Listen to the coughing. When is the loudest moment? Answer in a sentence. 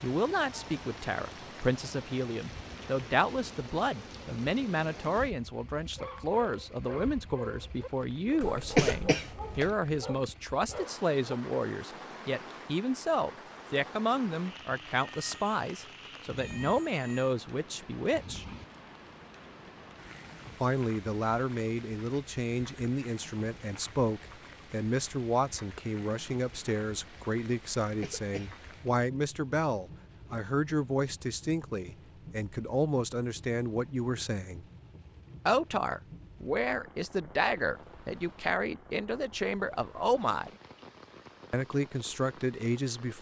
The loudest moment of the coughing is at 9 seconds.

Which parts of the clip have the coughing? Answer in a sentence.
You can hear the coughing from 8.4 to 9.8 s and from 27.8 to 28.9 s.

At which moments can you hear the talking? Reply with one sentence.
You can hear the talking from 0.0 to 18.4 s, from 20.6 to 34.6 s, from 35.5 to 40.5 s and from 41.5 to 43.1 s.